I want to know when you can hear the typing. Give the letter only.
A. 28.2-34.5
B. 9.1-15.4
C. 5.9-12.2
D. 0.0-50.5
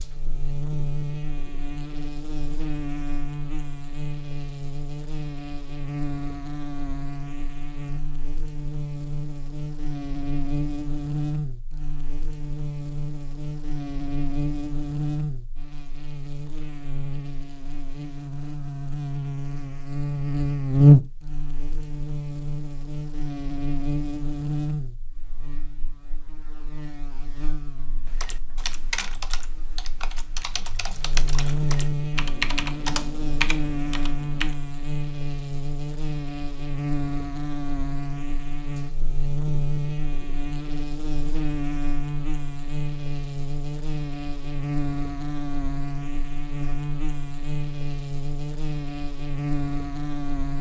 A.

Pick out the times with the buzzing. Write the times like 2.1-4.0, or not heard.
0.0-50.5.